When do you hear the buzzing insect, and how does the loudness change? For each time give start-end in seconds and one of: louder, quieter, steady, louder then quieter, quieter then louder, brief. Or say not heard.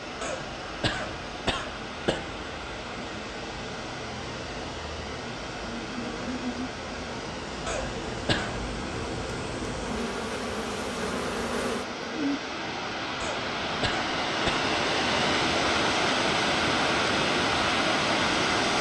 0.0-12.4 louder.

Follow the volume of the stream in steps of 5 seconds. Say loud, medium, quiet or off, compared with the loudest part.
quiet, quiet, medium, loud.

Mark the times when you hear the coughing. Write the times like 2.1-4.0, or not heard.
0.2-2.2, 7.7-8.5, 13.2-14.7.